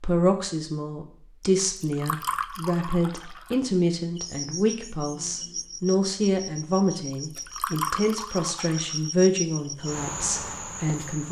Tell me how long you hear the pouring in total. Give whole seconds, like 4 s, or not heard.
4 s.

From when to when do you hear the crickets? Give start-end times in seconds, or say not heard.
4.2-11.2.